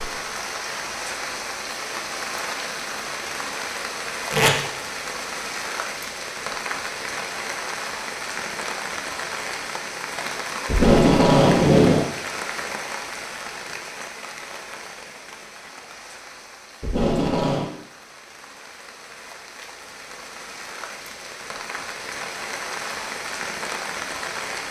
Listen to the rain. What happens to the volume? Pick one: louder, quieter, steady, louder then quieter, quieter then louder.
quieter then louder.